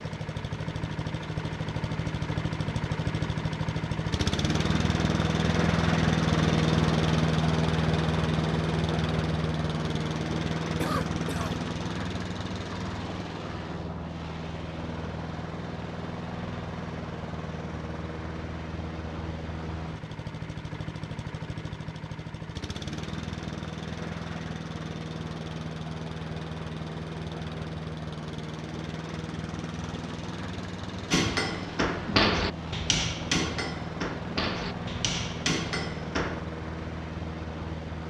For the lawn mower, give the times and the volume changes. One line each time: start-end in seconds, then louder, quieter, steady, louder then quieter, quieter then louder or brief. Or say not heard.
0.0-38.0 quieter.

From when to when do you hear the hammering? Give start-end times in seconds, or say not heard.
31.1-36.4.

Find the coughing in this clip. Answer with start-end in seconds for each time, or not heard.
10.8-11.6.